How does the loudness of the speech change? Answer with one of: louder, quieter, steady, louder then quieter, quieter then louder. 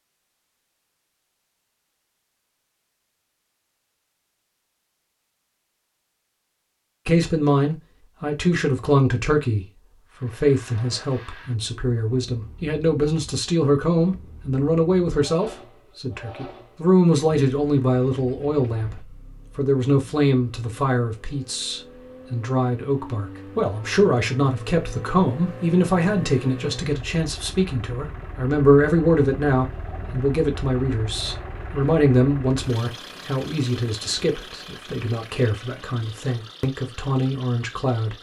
steady.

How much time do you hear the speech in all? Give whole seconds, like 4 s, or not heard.
31 s.